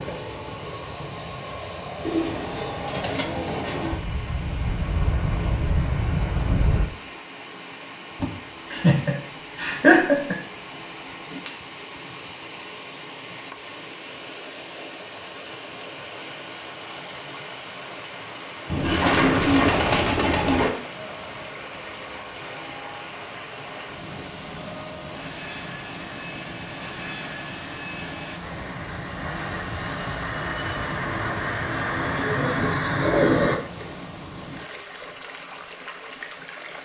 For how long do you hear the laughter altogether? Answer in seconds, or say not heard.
2 s.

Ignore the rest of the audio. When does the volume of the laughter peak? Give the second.
10 s.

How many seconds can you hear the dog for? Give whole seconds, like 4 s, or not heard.
not heard.